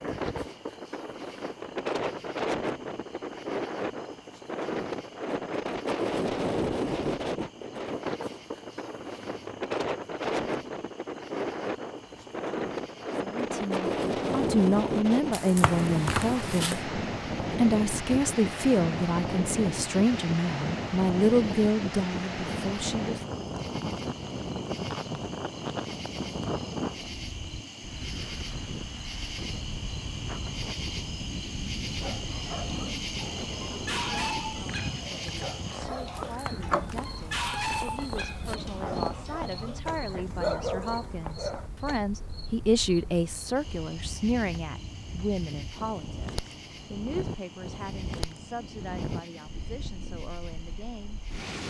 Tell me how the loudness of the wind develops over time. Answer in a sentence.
The loudness of the wind goes down.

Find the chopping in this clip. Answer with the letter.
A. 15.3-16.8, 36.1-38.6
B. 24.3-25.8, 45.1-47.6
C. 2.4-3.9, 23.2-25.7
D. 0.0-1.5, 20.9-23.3
A.